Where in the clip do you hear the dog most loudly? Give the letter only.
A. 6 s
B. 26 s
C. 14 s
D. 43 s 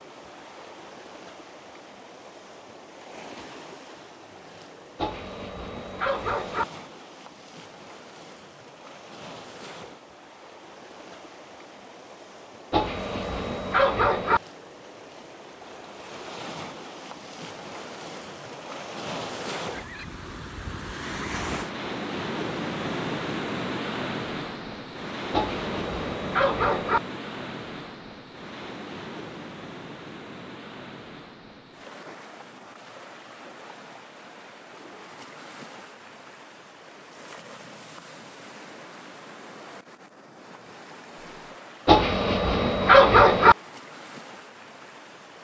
D.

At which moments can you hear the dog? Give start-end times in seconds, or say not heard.
5.0-6.7, 12.7-14.4, 25.3-27.0, 41.9-43.5.